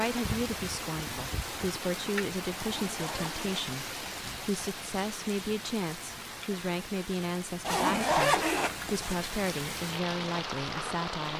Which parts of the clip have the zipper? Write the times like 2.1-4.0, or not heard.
2.5-3.6, 7.6-9.2.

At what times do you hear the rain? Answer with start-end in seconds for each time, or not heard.
0.0-11.3.